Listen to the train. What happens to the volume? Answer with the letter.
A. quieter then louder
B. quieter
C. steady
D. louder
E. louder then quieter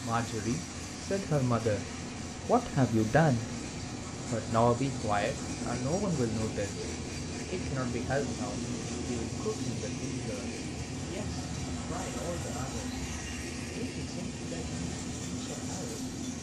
C.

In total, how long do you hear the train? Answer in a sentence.
You can hear the train for 16 seconds altogether.